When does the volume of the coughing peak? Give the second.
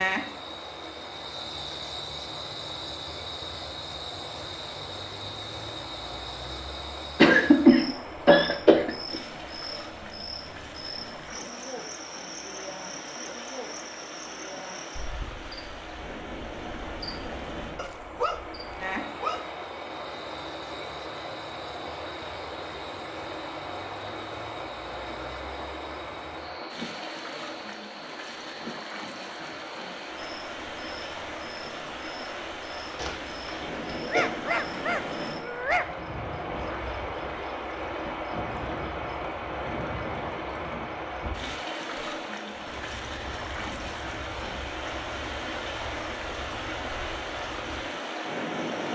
8 s.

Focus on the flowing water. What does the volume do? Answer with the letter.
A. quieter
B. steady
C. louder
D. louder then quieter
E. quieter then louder
C.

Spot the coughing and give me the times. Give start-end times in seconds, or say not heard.
7.2-9.2, 33.0-34.2.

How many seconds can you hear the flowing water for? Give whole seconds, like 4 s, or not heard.
49 s.